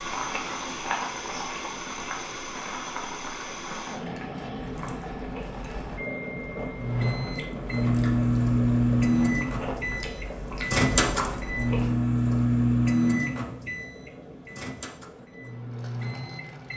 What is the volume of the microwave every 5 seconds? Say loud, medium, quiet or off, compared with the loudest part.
off, loud, loud, quiet.